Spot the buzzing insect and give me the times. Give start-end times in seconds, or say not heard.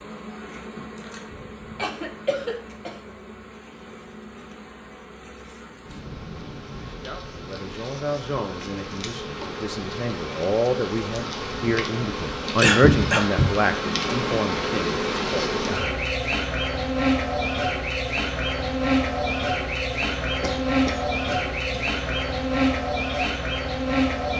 0.0-24.3.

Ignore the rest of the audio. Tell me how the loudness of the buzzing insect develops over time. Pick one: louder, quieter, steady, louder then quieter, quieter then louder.
louder.